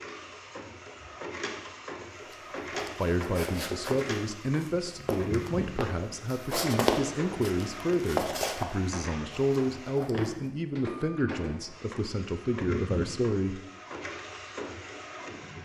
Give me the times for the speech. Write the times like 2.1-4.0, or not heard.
3.0-13.6.